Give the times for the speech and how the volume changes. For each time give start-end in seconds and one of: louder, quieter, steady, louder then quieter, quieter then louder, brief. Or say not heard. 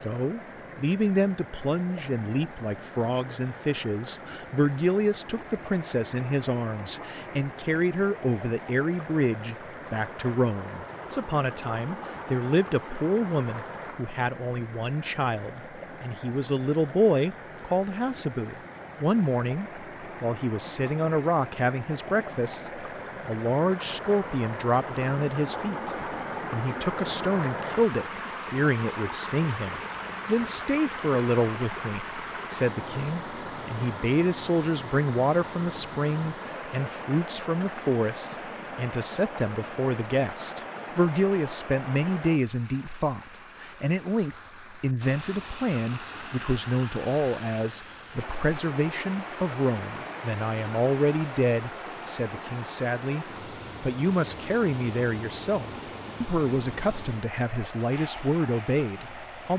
0.0-59.5 steady.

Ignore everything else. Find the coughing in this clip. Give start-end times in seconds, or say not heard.
not heard.